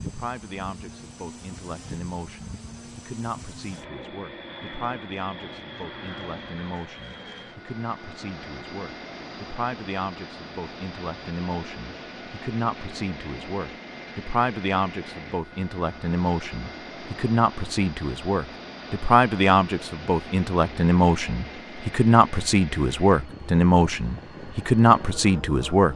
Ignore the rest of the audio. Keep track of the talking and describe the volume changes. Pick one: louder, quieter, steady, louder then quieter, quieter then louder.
louder.